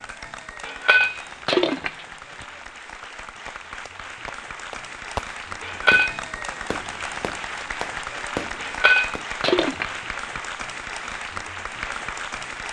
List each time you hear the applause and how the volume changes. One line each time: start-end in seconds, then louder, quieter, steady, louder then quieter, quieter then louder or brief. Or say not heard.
0.0-12.6 louder.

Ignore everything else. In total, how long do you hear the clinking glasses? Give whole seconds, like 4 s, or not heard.
4 s.